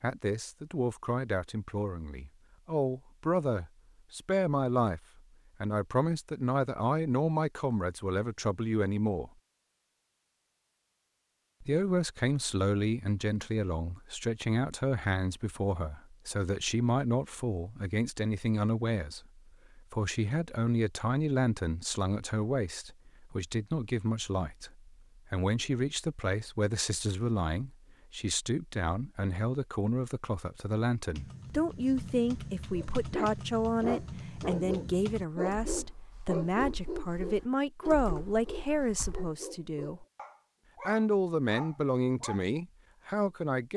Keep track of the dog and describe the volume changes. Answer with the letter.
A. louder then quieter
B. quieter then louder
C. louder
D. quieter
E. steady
D.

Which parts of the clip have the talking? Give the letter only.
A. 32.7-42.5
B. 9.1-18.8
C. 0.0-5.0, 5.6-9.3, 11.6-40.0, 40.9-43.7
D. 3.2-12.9
C.